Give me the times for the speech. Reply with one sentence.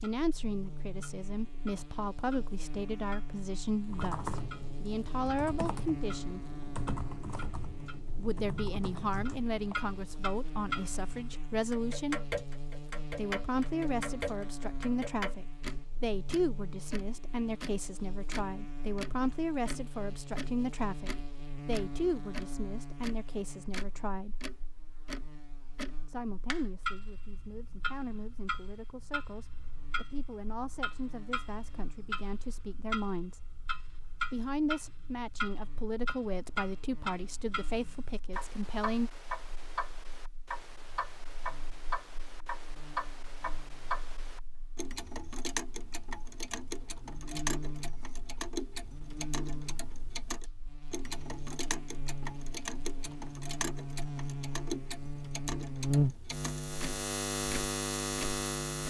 You can hear the speech from 0.0 to 6.4 s, from 8.2 to 12.2 s, from 13.2 to 24.4 s, from 26.1 to 33.4 s and from 34.3 to 39.1 s.